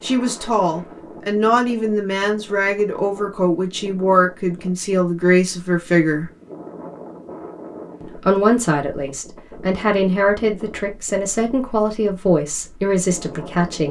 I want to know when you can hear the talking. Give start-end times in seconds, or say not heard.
0.0-6.3, 8.0-13.8.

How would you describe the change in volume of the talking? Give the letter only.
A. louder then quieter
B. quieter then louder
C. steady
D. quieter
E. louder
C.